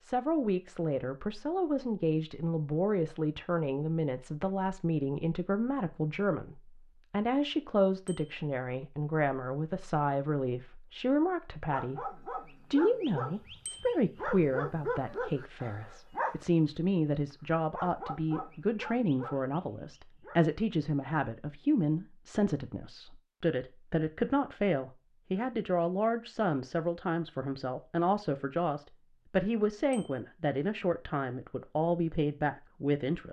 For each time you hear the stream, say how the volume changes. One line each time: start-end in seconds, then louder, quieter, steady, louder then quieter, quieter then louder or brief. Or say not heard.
not heard.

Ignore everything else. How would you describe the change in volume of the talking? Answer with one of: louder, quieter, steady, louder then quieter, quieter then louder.
steady.